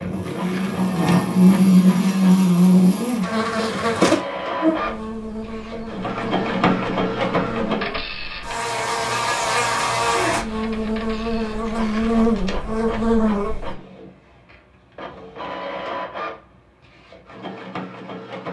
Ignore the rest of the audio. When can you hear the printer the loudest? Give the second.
7 s.